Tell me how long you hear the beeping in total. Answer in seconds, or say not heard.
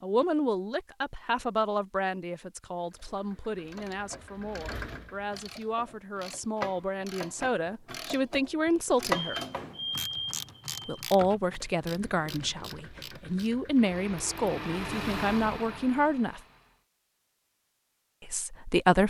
2 s.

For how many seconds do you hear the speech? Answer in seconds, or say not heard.
16 s.